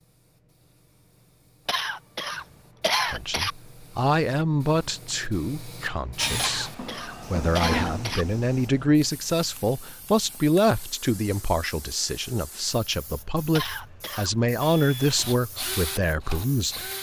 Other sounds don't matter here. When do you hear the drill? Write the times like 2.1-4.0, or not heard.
6.2-8.8, 14.6-16.9.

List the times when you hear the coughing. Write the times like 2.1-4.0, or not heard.
1.6-3.5, 6.3-8.2, 13.6-14.3.